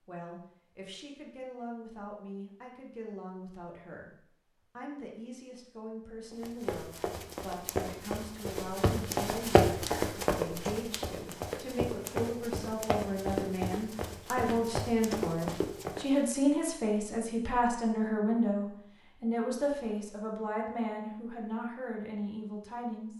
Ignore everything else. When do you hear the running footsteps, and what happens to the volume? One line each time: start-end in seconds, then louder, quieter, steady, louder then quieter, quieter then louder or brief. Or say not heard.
6.3-16.2 louder then quieter.